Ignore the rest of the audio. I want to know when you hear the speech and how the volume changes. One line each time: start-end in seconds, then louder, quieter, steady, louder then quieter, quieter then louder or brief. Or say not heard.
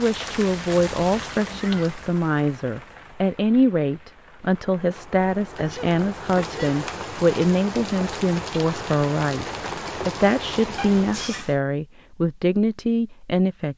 0.0-13.7 steady.